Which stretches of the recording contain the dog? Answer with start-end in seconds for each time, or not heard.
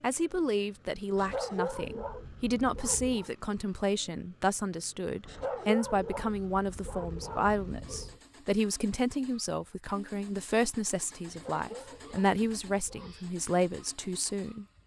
1.1-3.3, 5.2-8.2, 11.2-13.2.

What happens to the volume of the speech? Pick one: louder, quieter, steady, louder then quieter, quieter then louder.
steady.